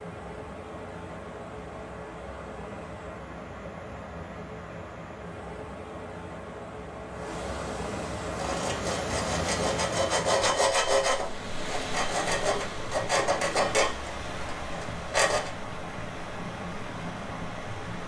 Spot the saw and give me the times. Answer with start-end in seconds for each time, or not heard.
8.2-15.5.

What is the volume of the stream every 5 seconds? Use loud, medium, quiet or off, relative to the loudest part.
medium, loud, loud, loud.